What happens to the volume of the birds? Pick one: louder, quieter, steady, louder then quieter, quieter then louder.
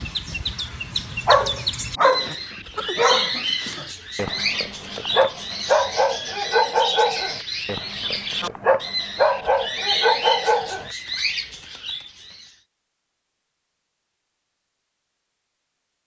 steady.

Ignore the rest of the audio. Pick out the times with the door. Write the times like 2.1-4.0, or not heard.
not heard.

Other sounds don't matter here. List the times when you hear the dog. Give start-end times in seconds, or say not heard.
1.2-10.9.